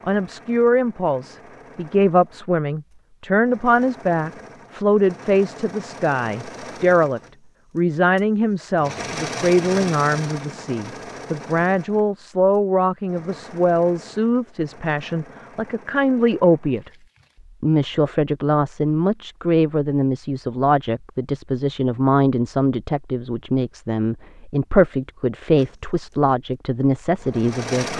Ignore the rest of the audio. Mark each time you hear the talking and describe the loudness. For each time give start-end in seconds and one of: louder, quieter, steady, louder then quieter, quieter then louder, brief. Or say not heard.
0.1-16.9 steady
17.6-27.9 steady.